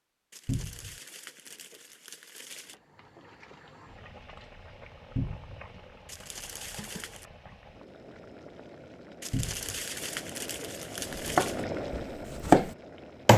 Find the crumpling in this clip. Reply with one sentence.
You can hear the crumpling from 0.3 to 2.8 s, from 6.0 to 7.2 s and from 9.2 to 11.7 s.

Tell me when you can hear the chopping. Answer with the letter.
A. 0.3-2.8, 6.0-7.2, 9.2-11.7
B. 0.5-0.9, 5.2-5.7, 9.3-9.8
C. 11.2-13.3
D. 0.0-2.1
C.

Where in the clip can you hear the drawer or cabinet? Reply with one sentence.
You can hear the drawer or cabinet from 0.5 to 0.9 s, from 5.2 to 5.7 s and from 9.3 to 9.8 s.